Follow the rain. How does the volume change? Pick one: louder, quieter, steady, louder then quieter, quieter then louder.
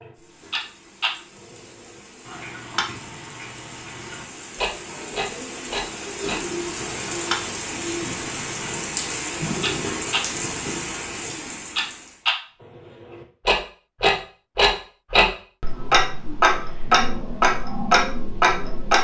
louder.